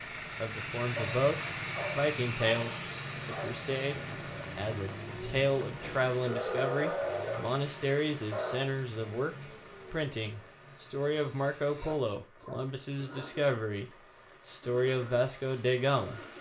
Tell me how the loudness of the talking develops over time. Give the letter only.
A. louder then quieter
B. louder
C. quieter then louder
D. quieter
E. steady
E.